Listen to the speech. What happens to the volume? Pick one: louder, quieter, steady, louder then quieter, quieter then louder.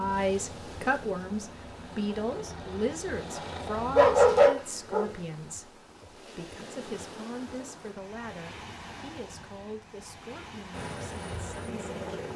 quieter.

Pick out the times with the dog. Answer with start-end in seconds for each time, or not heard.
4.0-5.1.